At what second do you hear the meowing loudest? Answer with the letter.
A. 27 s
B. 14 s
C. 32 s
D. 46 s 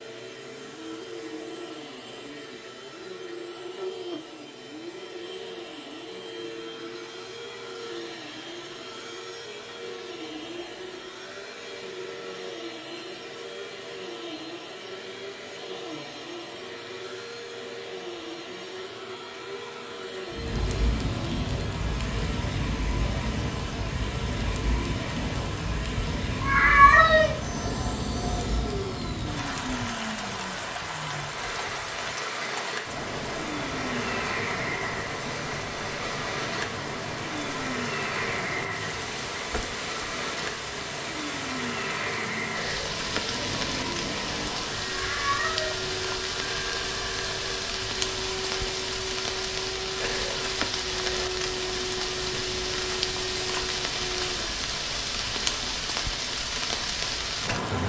A.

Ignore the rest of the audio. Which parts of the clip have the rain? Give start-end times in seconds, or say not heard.
20.3-57.8.